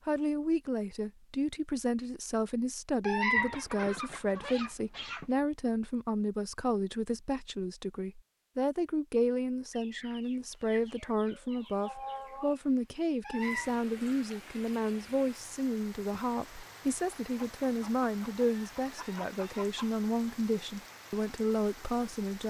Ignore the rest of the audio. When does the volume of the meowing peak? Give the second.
3 s.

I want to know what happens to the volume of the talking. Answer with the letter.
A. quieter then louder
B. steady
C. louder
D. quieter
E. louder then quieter
B.